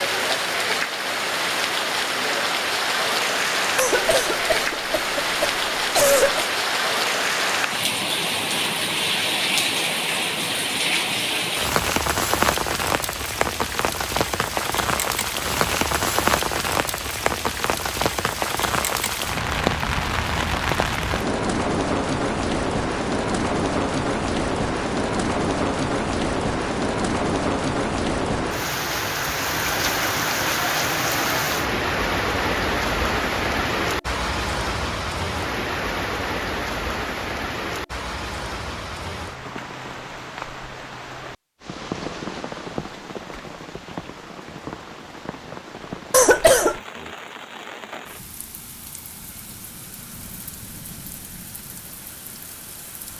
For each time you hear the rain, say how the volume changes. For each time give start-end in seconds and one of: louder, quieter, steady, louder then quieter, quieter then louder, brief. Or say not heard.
0.0-53.1 quieter.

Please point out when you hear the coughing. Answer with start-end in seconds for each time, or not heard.
3.8-6.5, 46.1-46.8.